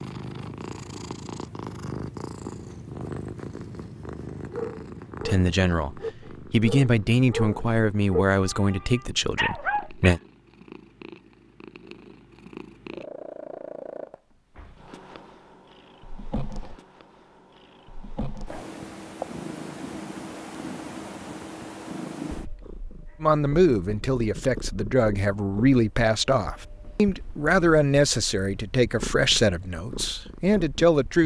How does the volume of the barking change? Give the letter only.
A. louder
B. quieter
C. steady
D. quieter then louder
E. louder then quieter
A.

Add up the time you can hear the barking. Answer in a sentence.
You can hear the barking for 6 seconds altogether.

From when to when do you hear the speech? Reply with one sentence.
The speech can be heard from 5.2 to 10.2 s and from 23.2 to 31.2 s.